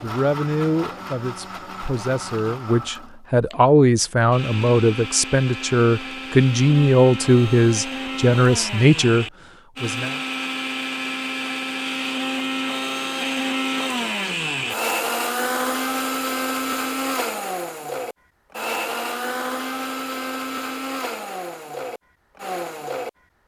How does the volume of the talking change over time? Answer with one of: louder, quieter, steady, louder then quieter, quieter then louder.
louder.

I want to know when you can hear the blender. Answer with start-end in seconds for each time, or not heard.
0.0-23.4.